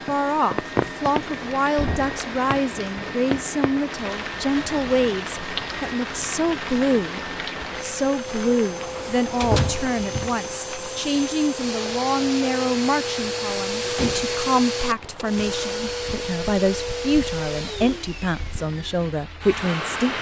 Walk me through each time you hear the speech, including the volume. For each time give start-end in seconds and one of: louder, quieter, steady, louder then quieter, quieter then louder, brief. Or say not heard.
0.1-20.1 steady.